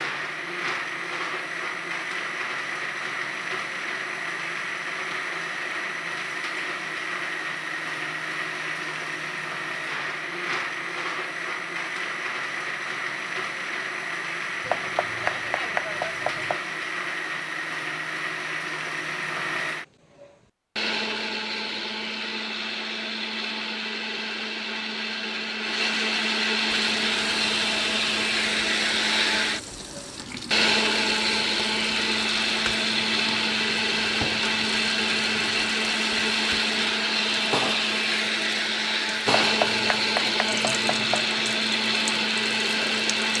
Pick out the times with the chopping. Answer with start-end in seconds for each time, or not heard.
14.6-16.6, 39.4-41.2.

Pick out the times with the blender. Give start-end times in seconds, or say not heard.
0.0-43.3.